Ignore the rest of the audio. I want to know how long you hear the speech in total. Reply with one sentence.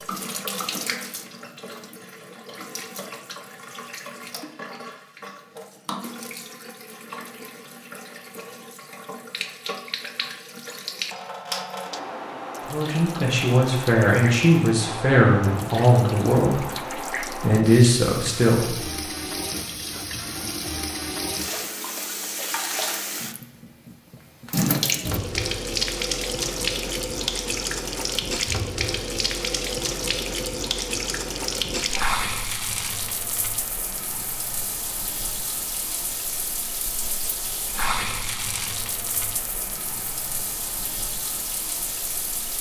The speech can be heard for 6 seconds in total.